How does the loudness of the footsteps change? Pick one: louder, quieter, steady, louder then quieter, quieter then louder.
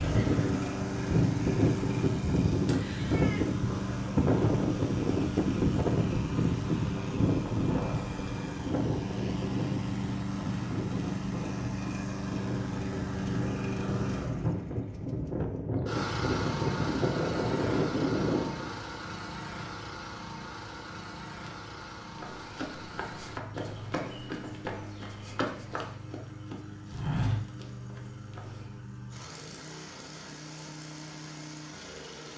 louder.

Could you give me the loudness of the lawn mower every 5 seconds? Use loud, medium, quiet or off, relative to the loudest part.
loud, loud, loud, loud, medium, medium, medium.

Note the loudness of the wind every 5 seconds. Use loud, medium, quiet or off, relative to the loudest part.
loud, loud, medium, loud, off, off, off.